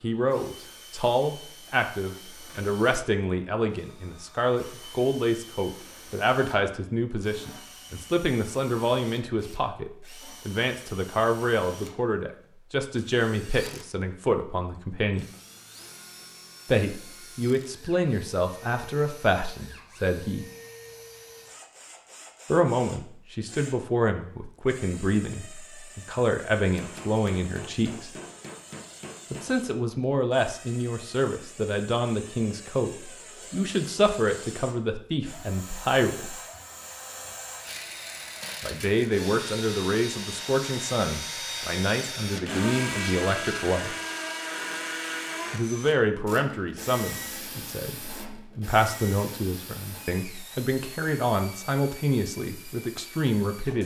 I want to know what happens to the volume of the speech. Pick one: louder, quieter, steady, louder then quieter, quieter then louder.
steady.